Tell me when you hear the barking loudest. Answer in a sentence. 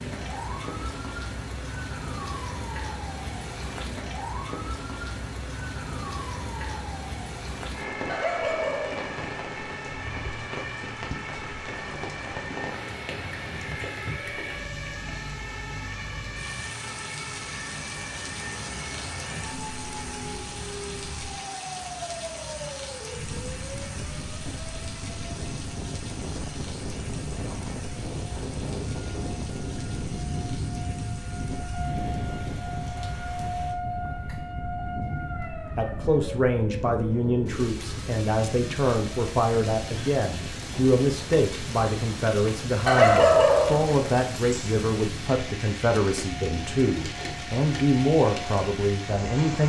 The volume of the barking peaks at 43 seconds.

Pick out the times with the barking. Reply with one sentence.
You can hear the barking from 8.1 to 9.1 s and from 42.9 to 44.6 s.